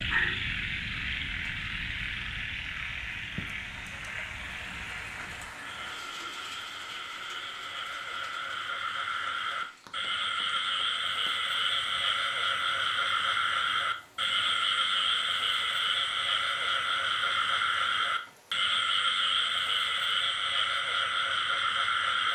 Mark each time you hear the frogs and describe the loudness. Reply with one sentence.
You can hear the frogs from 0.0 to 22.3 s, getting louder.